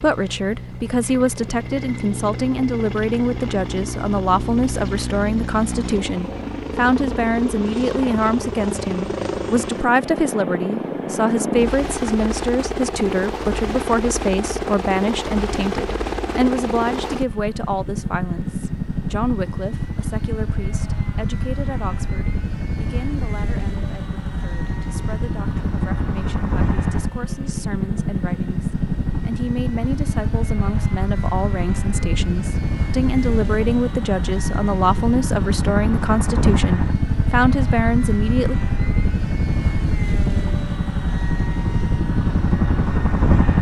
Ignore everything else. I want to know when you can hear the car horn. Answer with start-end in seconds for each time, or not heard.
not heard.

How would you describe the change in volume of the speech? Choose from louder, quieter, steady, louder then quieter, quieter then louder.
quieter then louder.